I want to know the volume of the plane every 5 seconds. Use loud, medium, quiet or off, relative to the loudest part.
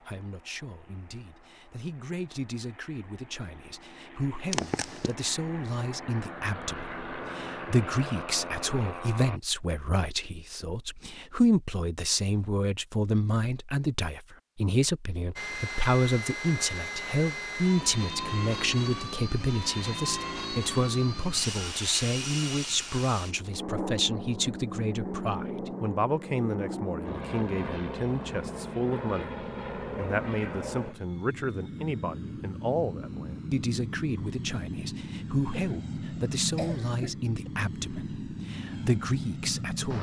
quiet, loud, off, loud, loud, loud, loud, loud.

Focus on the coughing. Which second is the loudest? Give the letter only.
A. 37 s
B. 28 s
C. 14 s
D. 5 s
D.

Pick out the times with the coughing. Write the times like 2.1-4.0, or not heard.
4.5-5.1, 35.5-37.5.